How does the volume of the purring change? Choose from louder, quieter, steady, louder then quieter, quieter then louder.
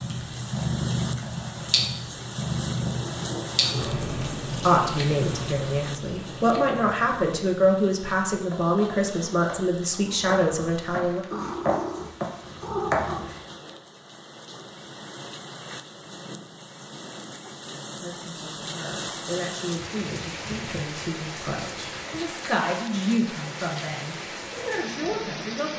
quieter then louder.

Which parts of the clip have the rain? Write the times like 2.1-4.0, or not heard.
0.0-25.7.